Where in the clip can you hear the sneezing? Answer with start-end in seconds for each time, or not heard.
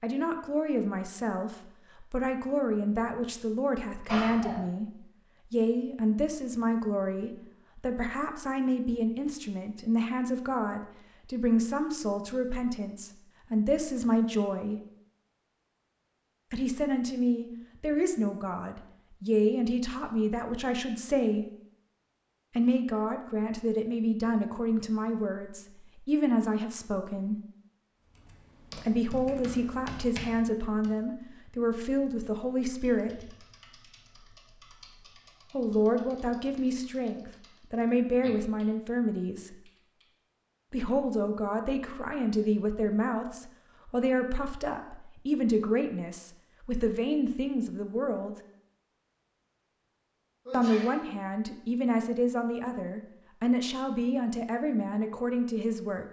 4.0-4.7, 50.5-51.0.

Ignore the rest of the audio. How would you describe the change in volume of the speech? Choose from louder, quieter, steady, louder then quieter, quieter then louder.
steady.